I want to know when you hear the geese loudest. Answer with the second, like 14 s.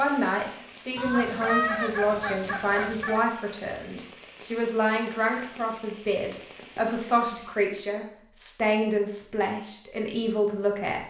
2 s.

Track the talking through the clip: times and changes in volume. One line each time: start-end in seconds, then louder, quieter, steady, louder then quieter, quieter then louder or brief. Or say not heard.
0.0-11.0 steady.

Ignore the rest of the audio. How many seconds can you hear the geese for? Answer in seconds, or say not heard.
2 s.